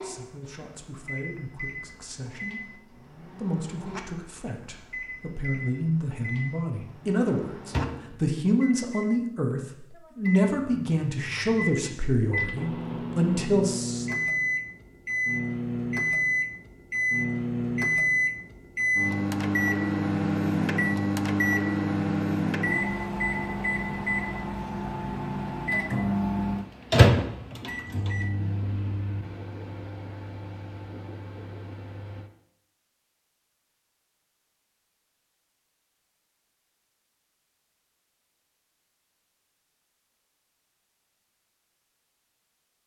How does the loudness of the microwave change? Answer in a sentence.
The loudness of the microwave goes up.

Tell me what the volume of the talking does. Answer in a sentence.
The volume of the talking goes up.